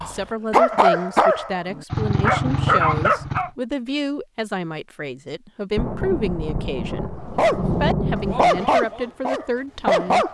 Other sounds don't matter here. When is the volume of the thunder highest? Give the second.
8 s.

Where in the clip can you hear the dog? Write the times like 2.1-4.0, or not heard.
0.0-3.5, 7.2-10.2.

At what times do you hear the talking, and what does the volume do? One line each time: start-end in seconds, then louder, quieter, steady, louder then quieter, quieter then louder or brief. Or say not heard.
0.1-10.2 steady.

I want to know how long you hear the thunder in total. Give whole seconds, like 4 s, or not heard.
3 s.